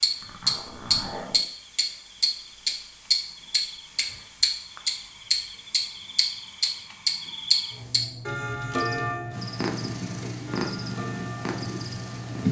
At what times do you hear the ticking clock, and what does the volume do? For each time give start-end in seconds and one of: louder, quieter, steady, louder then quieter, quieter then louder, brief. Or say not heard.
0.0-12.4 quieter.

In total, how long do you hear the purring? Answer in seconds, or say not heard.
3 s.